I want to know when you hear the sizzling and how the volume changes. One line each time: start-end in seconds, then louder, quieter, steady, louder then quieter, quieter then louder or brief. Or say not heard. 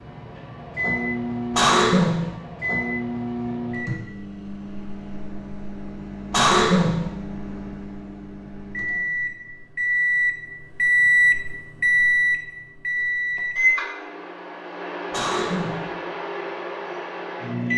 not heard.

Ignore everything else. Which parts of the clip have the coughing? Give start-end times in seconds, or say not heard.
1.5-2.3, 6.3-7.1, 15.1-15.9.